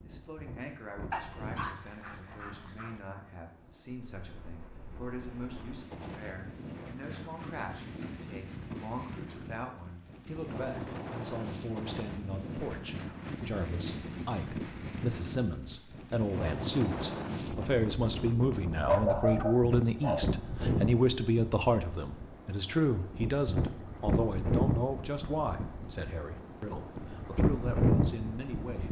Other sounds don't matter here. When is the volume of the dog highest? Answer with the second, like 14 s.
19 s.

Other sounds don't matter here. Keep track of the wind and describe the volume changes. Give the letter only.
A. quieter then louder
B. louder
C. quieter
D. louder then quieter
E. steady
B.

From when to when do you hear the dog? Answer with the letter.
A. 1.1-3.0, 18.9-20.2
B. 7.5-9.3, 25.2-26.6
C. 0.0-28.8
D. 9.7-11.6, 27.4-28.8
A.